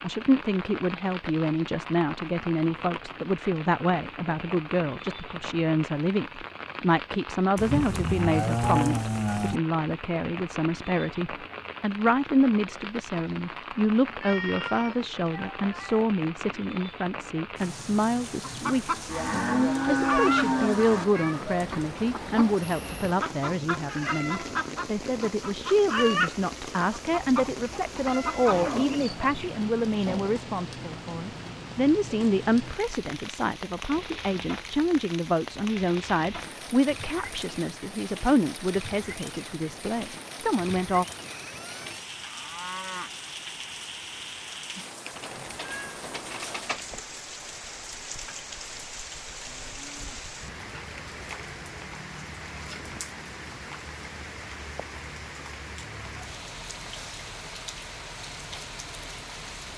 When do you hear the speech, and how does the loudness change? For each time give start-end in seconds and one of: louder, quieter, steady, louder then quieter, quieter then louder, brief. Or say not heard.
0.0-41.0 steady.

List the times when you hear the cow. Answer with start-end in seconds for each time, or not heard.
7.5-9.6, 19.1-21.1, 28.5-30.4, 41.2-43.1, 49.4-50.9.